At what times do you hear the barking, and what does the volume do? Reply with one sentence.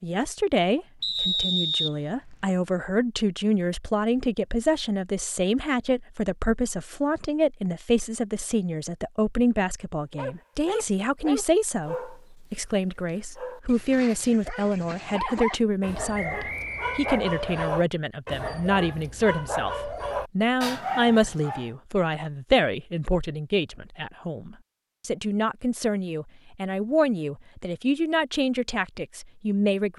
The barking can be heard from 10.2 to 21.7 s, getting quieter then louder.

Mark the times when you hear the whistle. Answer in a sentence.
You can hear the whistle from 1.0 to 2.4 s and from 16.1 to 17.7 s.